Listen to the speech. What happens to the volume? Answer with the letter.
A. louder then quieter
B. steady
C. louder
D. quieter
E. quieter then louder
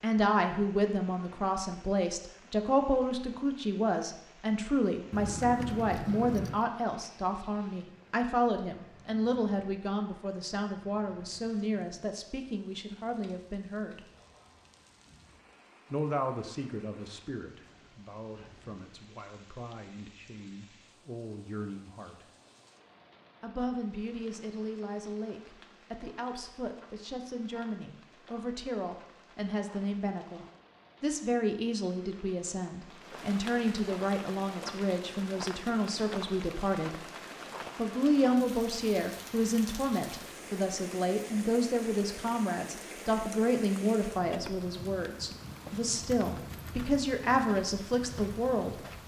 E.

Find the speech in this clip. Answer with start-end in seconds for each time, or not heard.
0.0-14.1, 15.9-22.2, 23.4-37.0, 37.8-48.8.